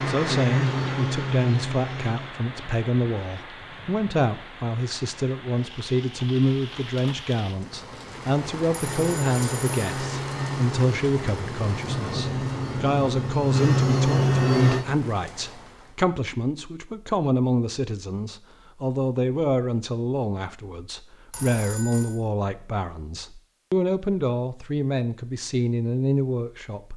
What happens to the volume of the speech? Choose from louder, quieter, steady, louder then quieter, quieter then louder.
steady.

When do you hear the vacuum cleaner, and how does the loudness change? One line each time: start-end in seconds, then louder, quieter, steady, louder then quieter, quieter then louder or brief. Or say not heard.
0.0-2.4 brief
8.8-14.8 louder.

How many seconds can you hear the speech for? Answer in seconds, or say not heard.
27 s.